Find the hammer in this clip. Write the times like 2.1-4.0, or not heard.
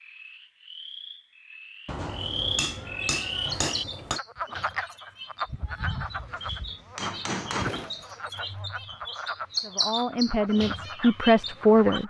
1.9-4.2, 6.2-8.1.